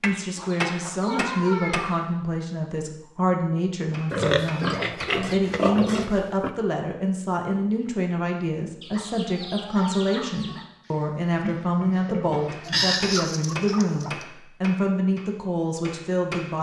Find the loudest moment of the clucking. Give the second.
13 s.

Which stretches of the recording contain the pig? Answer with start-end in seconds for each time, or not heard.
4.1-6.5, 10.8-12.9.